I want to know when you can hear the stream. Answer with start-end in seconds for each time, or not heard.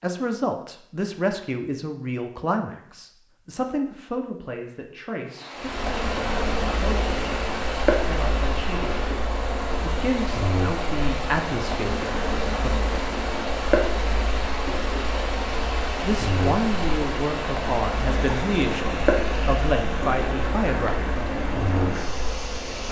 5.2-22.8.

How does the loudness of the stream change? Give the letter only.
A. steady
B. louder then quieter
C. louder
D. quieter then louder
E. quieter
A.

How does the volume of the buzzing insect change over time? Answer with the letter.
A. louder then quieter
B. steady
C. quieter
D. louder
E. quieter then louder
B.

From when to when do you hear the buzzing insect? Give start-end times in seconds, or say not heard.
5.5-22.8.